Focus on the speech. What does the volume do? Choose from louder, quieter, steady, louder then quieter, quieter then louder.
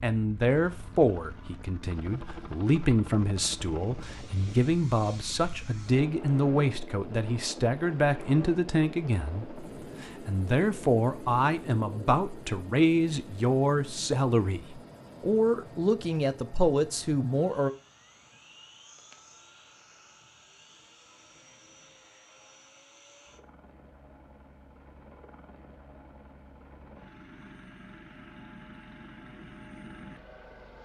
steady.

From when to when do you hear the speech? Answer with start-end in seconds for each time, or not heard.
0.0-17.7.